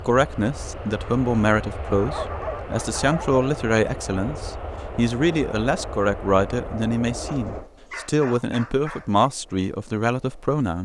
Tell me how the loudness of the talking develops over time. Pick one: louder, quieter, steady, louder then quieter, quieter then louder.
steady.